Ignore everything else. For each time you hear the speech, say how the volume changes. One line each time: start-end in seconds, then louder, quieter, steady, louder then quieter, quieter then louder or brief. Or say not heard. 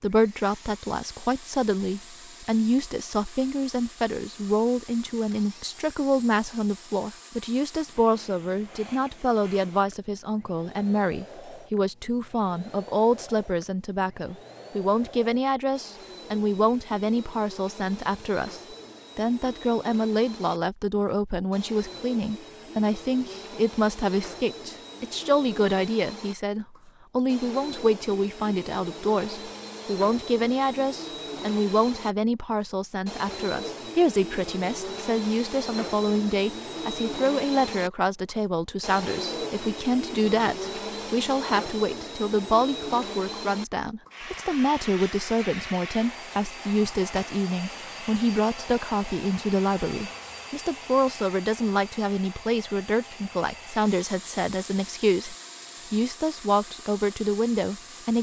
0.0-58.1 steady.